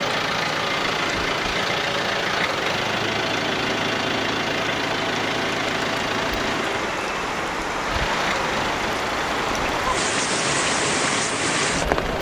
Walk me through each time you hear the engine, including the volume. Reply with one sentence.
The engine can be heard from 0.0 to 12.1 s, getting quieter.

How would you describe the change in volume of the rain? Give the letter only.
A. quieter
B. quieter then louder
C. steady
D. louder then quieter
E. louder
E.